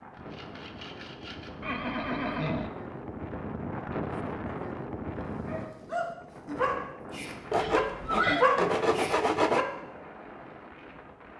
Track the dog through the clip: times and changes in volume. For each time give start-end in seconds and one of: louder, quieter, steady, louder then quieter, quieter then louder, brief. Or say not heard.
5.4-9.7 louder then quieter.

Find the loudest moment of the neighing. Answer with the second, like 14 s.
8 s.